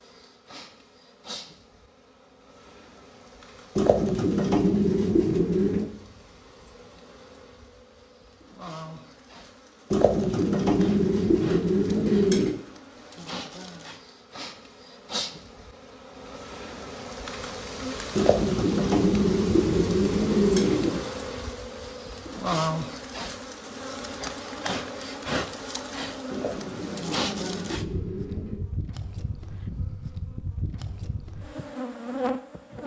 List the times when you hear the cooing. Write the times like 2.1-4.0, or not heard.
3.8-5.9, 9.9-12.6, 18.1-21.1, 26.3-28.6.